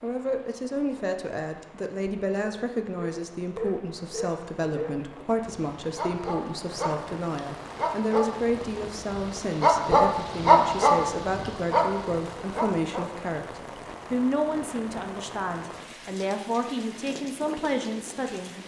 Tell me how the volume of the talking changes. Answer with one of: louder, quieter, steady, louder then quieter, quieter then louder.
steady.